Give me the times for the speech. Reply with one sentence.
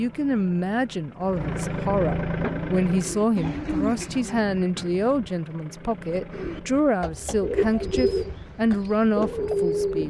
You can hear the speech from 0.0 to 10.0 s.